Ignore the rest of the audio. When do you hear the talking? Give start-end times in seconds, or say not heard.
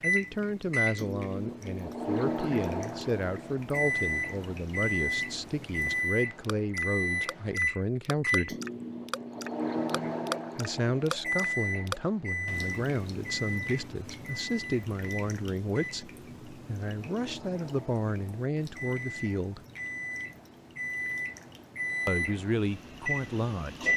0.0-8.6, 10.6-19.6, 22.1-23.9.